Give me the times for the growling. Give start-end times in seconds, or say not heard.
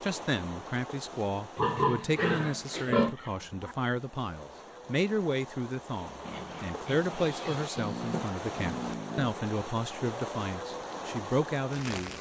2.1-3.8, 7.8-9.4.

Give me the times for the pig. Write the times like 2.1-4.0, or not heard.
1.6-3.1, 6.2-8.2.